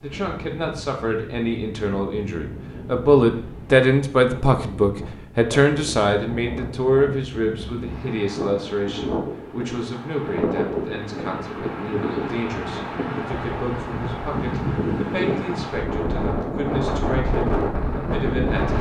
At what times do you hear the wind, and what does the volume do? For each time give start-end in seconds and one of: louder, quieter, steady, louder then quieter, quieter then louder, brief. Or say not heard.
0.0-18.7 louder.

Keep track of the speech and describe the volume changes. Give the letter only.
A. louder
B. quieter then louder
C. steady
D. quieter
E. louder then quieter
D.